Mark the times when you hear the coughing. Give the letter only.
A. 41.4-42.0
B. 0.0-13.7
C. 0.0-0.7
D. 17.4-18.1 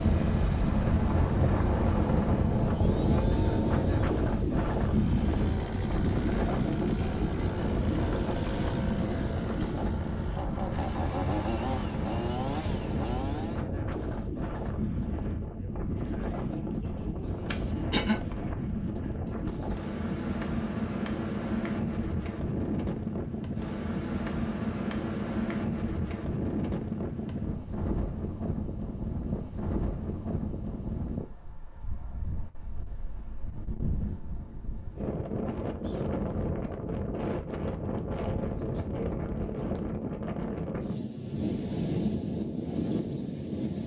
D.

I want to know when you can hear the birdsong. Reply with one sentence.
The birdsong can't be heard in this clip.